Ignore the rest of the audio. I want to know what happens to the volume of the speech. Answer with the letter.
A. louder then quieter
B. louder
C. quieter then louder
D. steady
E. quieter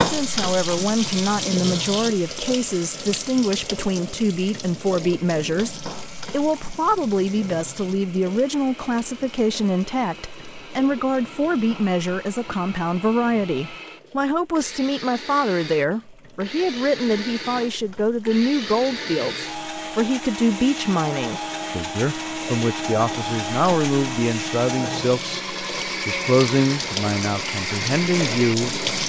D.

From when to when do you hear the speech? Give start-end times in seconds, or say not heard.
0.0-28.8.